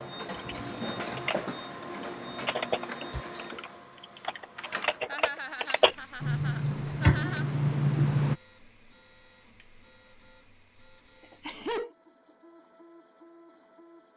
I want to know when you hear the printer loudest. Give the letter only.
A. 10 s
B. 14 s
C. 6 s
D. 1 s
D.